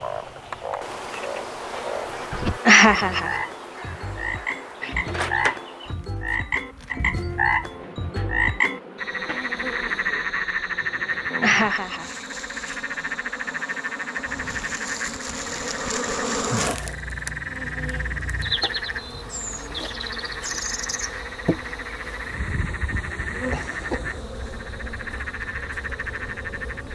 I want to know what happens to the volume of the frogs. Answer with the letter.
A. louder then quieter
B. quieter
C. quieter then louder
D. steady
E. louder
A.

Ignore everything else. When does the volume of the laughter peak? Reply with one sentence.
The volume of the laughter peaks at 3 seconds.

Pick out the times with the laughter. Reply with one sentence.
The laughter can be heard from 2.6 to 3.4 s, from 11.4 to 12.2 s and from 23.4 to 24.1 s.